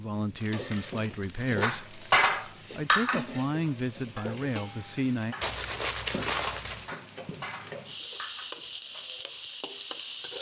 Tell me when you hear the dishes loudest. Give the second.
2 s.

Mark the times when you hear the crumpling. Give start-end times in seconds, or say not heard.
0.3-2.2, 5.4-6.9.